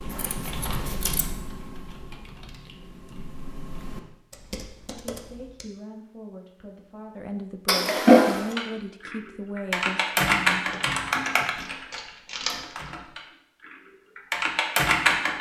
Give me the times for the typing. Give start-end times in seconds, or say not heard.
0.0-5.7, 8.3-15.3.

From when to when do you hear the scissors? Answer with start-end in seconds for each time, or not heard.
0.1-1.2, 7.7-8.6, 10.6-12.6.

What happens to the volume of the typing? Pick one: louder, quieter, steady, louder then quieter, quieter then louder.
quieter then louder.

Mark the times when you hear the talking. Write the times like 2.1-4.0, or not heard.
4.9-10.7.